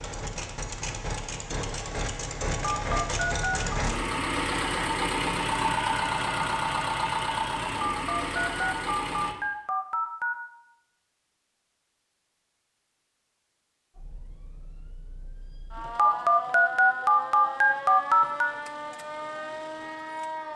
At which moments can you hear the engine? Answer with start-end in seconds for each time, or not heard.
0.0-9.3.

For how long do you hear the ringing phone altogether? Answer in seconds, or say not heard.
6 s.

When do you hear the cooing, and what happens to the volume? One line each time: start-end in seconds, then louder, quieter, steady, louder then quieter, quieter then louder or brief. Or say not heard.
not heard.